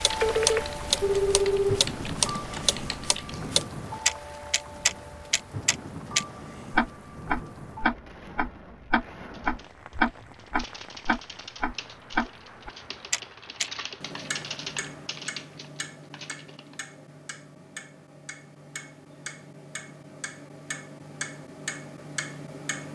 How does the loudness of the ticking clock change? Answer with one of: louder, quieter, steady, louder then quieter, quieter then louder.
quieter.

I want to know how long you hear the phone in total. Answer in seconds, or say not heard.
2 s.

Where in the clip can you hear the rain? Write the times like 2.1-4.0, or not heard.
0.0-15.2.